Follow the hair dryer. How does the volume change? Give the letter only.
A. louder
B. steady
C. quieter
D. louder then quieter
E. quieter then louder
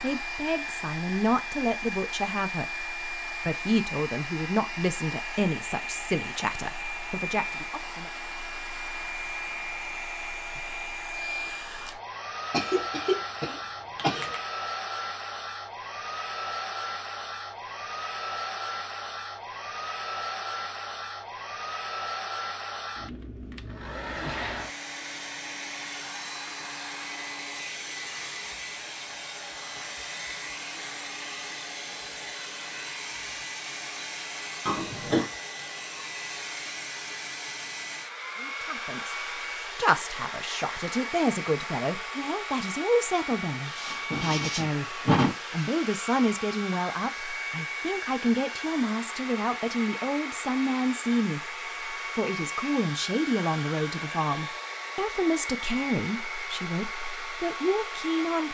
B.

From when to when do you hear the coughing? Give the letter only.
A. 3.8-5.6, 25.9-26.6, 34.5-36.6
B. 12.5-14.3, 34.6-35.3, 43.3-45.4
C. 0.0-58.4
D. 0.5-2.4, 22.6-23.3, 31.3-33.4
B.